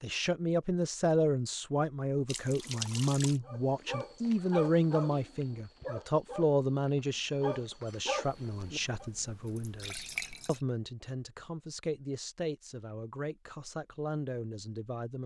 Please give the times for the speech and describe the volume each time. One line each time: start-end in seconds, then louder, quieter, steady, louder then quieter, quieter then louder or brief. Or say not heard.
0.0-15.2 quieter.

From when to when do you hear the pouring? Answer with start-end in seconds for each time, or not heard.
2.2-3.4, 8.2-10.6.